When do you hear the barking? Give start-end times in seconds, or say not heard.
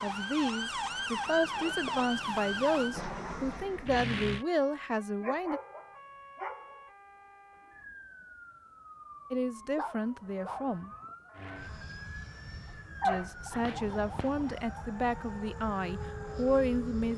1.6-2.1, 5.2-6.9, 9.8-10.8, 13.0-14.8.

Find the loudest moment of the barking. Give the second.
13 s.